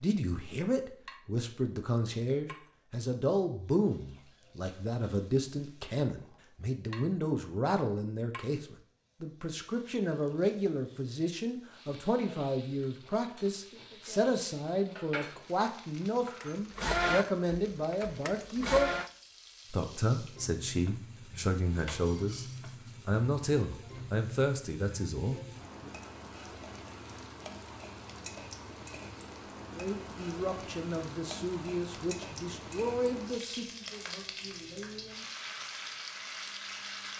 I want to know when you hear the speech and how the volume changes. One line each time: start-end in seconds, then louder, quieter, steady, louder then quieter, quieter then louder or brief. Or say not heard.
0.0-18.9 steady
19.7-22.4 brief
23.1-25.9 brief
29.7-35.2 quieter.